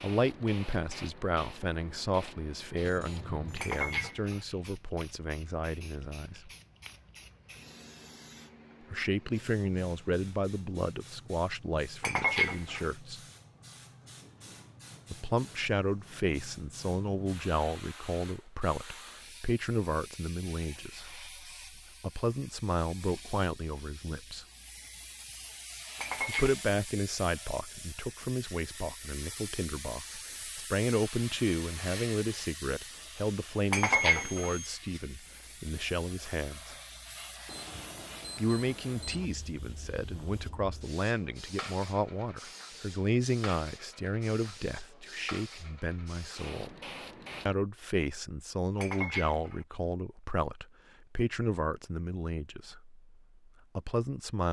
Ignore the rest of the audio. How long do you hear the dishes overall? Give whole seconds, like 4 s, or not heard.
4 s.